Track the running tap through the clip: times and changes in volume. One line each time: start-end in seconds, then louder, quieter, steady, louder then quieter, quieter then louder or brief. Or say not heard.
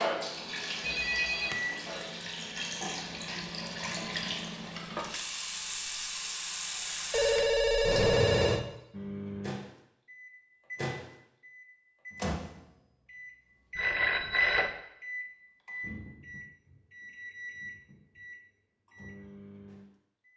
0.0-8.6 louder.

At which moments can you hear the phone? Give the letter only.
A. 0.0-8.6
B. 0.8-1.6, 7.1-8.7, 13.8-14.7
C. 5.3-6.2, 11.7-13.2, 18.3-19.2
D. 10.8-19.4
B.